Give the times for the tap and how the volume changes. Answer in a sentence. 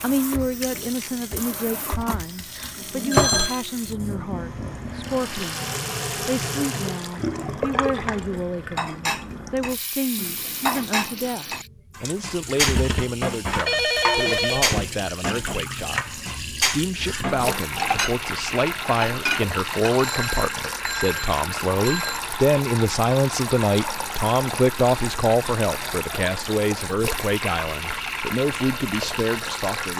You can hear the tap from 0.0 to 29.9 s, at a steady volume.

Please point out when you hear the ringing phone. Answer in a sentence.
You can hear the ringing phone from 2.5 to 3.6 s, from 13.7 to 14.8 s and from 20.0 to 22.2 s.